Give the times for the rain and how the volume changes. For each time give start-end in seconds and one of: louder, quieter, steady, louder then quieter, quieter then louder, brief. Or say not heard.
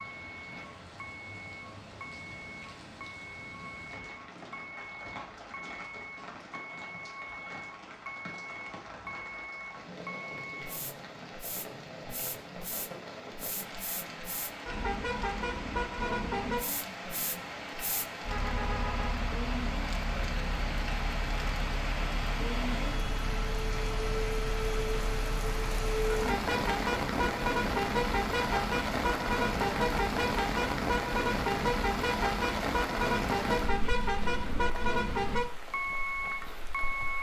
0.0-37.1 louder.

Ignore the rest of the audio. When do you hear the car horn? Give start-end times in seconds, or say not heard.
18.2-19.2.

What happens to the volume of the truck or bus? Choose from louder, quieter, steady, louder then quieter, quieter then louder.
louder.